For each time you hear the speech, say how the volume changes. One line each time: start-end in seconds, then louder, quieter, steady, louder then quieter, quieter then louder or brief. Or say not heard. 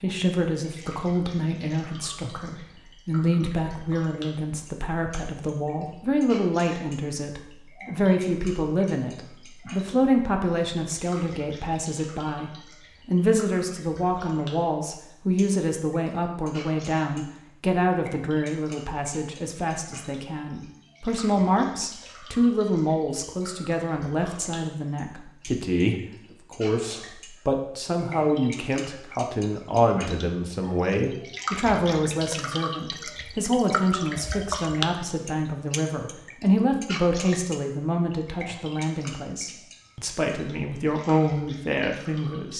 0.0-42.5 steady.